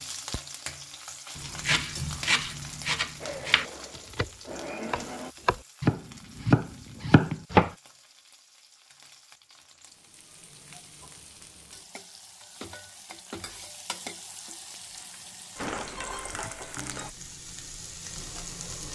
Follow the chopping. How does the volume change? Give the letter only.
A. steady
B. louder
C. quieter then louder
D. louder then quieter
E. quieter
C.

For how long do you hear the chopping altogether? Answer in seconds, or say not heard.
6 s.